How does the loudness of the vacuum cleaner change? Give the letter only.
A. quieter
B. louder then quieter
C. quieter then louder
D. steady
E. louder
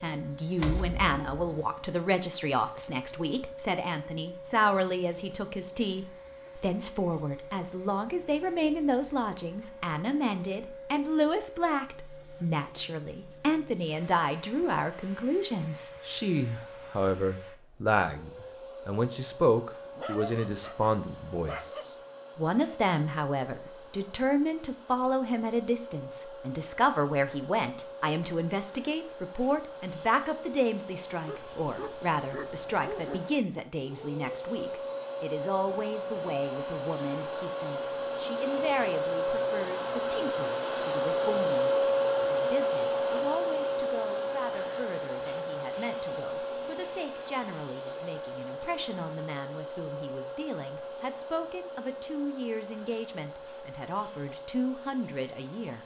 B.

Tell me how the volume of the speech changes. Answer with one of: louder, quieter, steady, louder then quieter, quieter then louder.
quieter.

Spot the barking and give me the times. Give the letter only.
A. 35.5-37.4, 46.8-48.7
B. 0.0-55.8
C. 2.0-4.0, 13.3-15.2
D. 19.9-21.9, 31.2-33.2
D.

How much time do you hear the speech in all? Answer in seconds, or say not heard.
56 s.